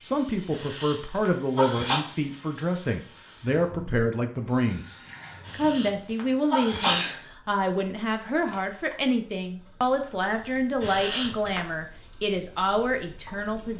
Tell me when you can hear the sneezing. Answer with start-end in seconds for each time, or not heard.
0.5-2.0, 5.5-7.2, 10.8-11.6.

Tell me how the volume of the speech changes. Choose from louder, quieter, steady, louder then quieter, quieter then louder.
steady.